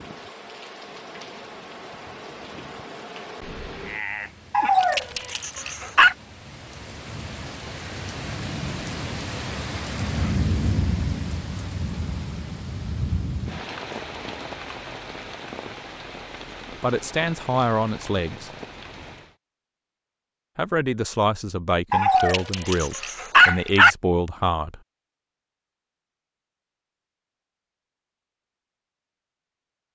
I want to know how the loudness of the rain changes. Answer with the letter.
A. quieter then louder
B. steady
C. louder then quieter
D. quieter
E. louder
C.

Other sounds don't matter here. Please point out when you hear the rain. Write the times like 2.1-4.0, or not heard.
0.0-19.4.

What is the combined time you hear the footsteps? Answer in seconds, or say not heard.
not heard.